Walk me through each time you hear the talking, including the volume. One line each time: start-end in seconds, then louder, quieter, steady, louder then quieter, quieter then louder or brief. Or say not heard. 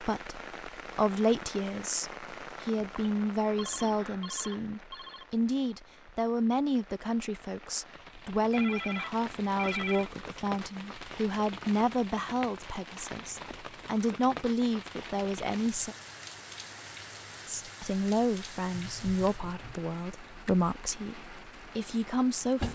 0.0-15.9 steady
17.4-22.7 quieter then louder.